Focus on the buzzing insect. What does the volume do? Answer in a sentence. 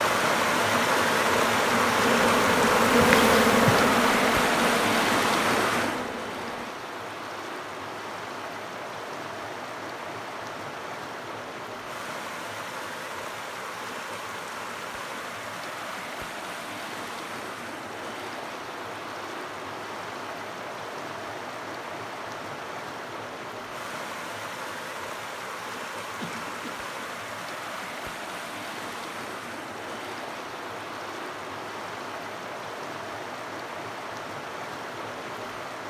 The volume of the buzzing insect goes up, then down.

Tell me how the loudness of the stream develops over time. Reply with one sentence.
The volume of the stream goes down.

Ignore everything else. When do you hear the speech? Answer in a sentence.
The speech can't be heard in this clip.